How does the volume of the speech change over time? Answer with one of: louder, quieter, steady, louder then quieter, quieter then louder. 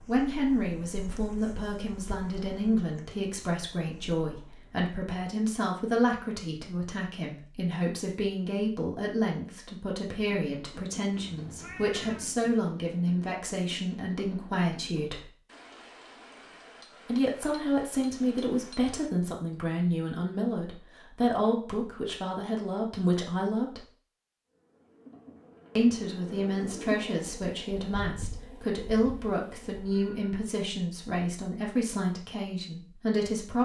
steady.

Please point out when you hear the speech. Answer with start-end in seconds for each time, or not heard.
0.1-15.3, 17.1-23.9, 25.8-33.5.